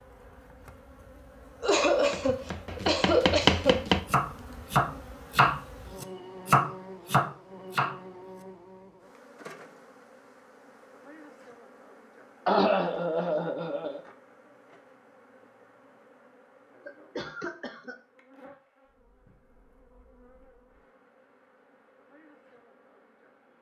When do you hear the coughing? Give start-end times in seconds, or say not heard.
1.6-3.9, 12.4-14.0, 16.9-17.9.